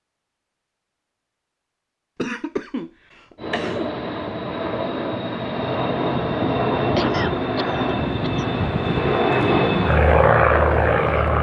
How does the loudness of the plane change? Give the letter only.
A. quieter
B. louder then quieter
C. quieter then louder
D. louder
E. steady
D.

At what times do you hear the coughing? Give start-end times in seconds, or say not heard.
2.1-3.9, 7.0-8.4.